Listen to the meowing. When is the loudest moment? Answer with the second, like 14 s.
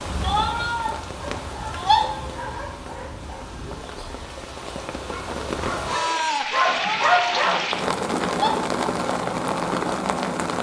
2 s.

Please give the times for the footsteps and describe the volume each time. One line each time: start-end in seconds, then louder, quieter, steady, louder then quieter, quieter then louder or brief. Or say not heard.
not heard.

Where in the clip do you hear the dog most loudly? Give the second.
7 s.